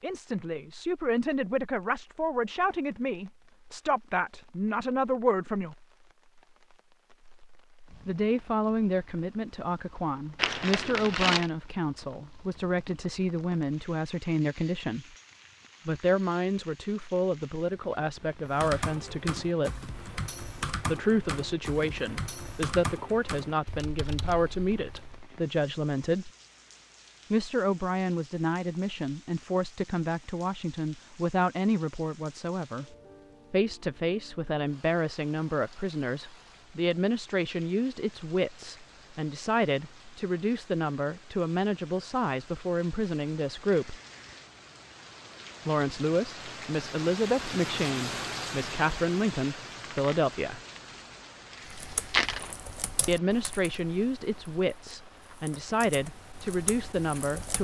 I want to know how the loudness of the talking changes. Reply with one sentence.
The volume of the talking stays about the same.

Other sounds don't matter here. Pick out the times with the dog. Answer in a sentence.
The dog can't be heard in this clip.